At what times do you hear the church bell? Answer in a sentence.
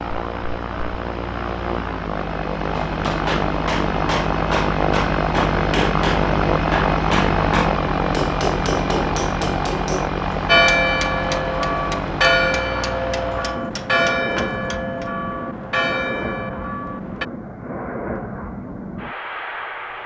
You can hear the church bell from 10.4 to 17.2 s.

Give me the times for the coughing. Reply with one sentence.
You can't hear the coughing here.